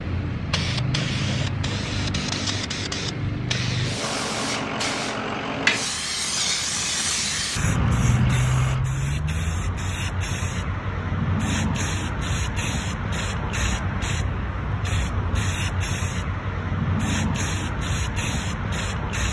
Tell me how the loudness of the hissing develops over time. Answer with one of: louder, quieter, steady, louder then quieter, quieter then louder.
steady.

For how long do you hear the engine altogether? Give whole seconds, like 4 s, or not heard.
5 s.